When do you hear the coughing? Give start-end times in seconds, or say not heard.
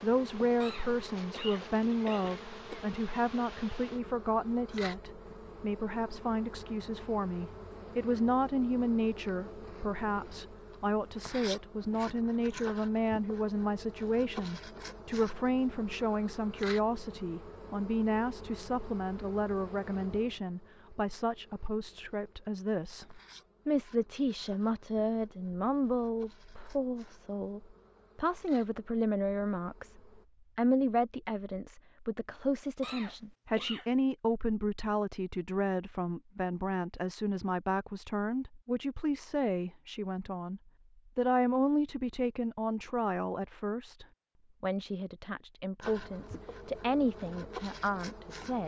0.6-2.8, 32.8-33.9.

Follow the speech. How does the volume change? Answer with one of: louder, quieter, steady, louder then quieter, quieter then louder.
steady.